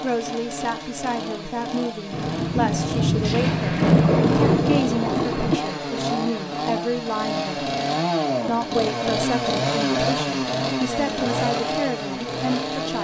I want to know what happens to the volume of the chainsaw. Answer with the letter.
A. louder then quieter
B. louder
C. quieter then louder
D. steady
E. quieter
B.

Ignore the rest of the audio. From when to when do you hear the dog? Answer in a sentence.
You can't hear the dog here.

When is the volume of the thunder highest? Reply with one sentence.
The volume of the thunder peaks at 4 seconds.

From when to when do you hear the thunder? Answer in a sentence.
You can hear the thunder from 2.1 to 5.5 s.